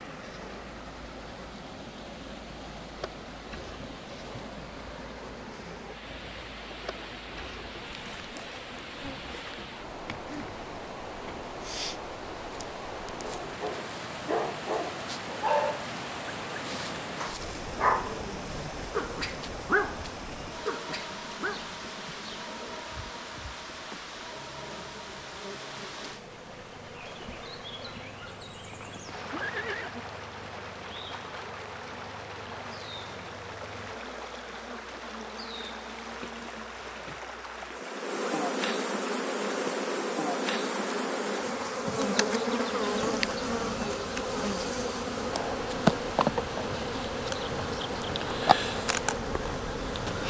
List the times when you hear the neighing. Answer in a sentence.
The neighing can be heard from 28.7 to 29.9 s.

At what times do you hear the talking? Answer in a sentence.
The talking can't be heard in this clip.